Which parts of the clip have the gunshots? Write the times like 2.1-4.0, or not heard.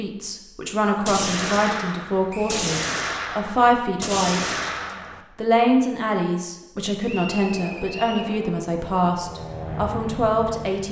1.1-5.2.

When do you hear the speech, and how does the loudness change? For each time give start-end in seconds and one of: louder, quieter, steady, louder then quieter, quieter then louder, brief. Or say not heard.
0.0-4.5 quieter then louder
5.3-10.8 steady.